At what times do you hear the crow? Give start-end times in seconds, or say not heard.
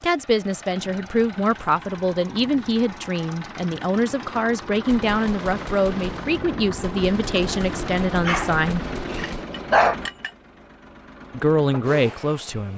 not heard.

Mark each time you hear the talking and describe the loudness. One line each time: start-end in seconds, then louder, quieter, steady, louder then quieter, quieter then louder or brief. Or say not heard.
0.0-8.8 steady
11.3-12.7 brief.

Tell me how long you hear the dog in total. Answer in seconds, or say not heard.
2 s.